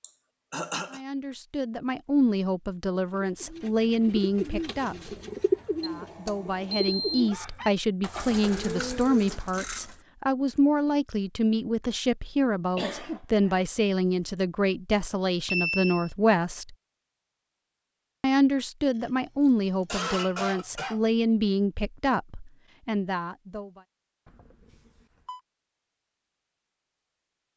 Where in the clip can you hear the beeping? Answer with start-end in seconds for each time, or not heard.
5.8-7.3, 15.5-16.1, 24.2-25.4.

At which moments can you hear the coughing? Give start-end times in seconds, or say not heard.
0.0-1.0, 12.8-13.5, 18.9-21.0.